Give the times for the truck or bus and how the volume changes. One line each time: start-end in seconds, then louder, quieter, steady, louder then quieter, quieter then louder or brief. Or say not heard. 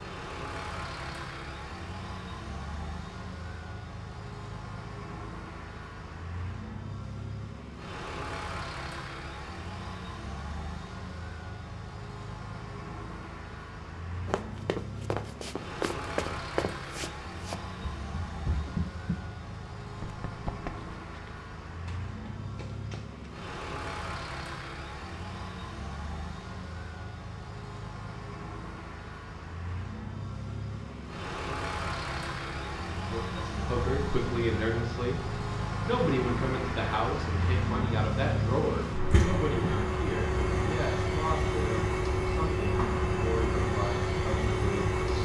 0.0-45.2 louder.